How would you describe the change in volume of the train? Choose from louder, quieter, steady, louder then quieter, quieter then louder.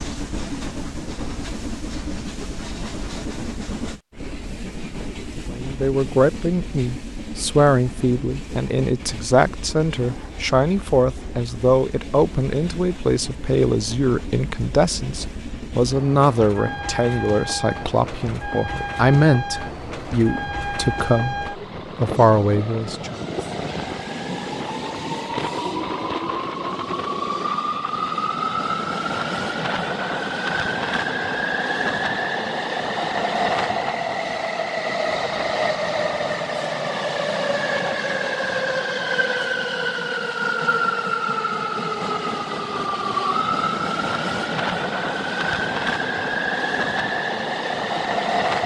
louder.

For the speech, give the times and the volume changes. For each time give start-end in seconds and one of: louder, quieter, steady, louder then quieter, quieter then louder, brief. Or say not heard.
5.5-23.2 steady.